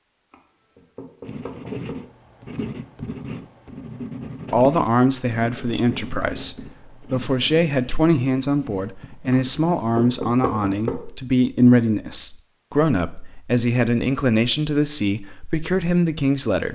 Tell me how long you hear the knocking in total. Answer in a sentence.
The knocking can be heard for 3 seconds in total.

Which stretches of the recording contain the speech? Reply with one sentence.
The speech can be heard from 4.5 to 16.7 s.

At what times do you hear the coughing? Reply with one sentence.
The coughing can't be heard in this clip.